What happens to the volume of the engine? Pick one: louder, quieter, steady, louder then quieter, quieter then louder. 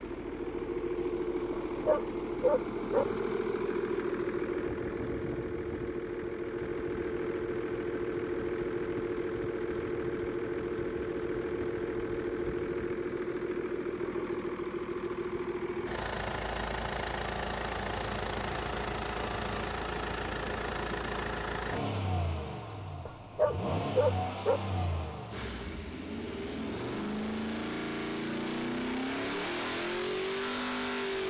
steady.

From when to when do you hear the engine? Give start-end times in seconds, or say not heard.
0.0-31.2.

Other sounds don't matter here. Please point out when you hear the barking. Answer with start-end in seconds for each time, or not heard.
1.5-3.0, 23.1-24.6.